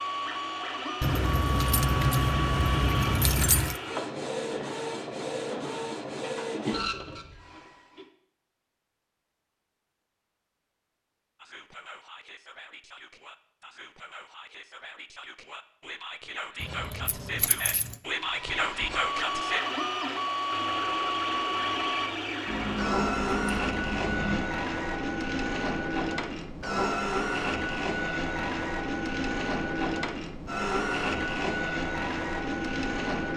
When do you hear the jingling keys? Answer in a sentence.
The jingling keys can be heard from 1.0 to 3.8 s, from 16.6 to 17.9 s and from 22.4 to 24.4 s.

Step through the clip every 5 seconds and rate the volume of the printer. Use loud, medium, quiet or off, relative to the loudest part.
loud, medium, off, loud, loud, loud, loud.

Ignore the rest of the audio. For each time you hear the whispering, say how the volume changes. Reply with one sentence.
The whispering can be heard from 11.3 to 19.6 s, getting louder.